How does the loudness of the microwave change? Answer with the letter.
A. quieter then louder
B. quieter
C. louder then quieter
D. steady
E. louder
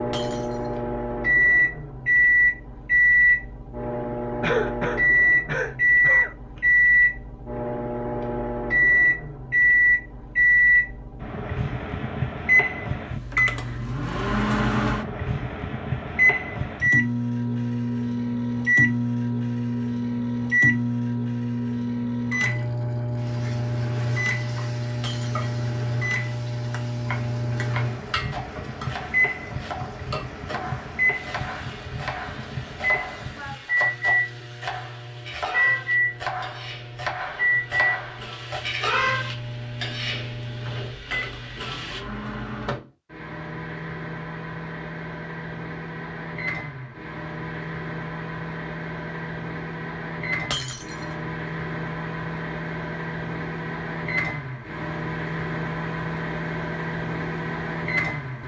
B.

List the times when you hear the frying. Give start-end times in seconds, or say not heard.
23.1-42.0.